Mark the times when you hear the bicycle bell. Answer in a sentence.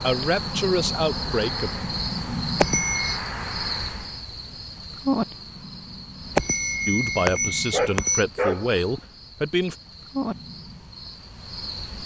You can hear the bicycle bell from 2.5 to 3.1 s and from 6.3 to 8.2 s.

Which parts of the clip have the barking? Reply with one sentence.
You can hear the barking from 7.7 to 9.0 s.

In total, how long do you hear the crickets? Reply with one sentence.
The crickets can be heard for 12 seconds in total.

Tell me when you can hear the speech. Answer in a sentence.
You can hear the speech from 0.0 to 1.7 s and from 6.8 to 9.8 s.